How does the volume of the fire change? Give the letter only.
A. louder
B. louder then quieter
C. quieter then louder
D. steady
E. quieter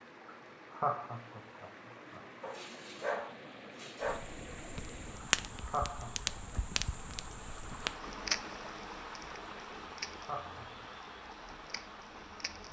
E.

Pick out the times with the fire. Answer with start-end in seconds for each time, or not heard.
4.0-12.6.